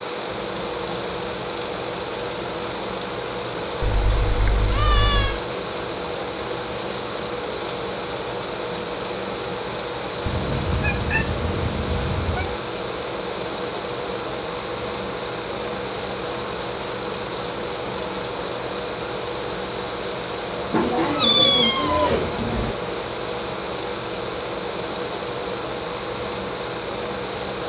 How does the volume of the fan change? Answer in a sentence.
The loudness of the fan stays about the same.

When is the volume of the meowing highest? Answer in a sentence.
The loudest moment of the meowing is at 21 seconds.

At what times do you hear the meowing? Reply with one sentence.
You can hear the meowing from 3.8 to 5.4 s, from 10.2 to 12.6 s and from 20.7 to 22.8 s.